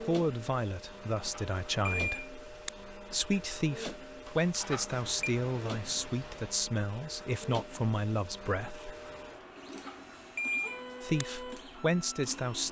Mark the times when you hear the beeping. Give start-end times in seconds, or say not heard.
1.3-2.7, 4.2-5.2, 9.8-11.2.